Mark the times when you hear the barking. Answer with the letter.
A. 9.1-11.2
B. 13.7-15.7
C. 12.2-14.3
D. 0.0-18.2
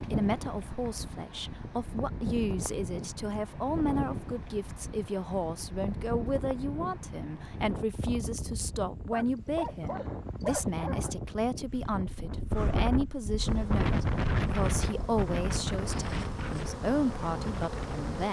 A.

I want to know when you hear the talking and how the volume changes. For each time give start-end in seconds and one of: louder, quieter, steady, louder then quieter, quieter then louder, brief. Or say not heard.
0.0-18.2 steady.